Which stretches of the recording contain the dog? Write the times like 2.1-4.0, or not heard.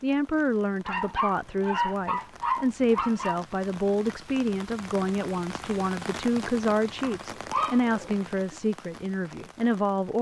0.8-3.4, 7.0-8.6.